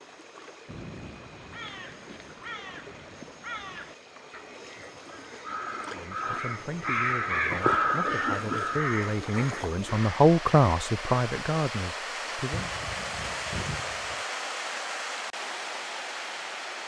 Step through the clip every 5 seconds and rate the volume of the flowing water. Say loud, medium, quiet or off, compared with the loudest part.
quiet, medium, loud, loud.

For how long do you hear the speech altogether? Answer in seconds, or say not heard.
7 s.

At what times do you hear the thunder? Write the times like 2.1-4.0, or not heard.
12.5-14.2.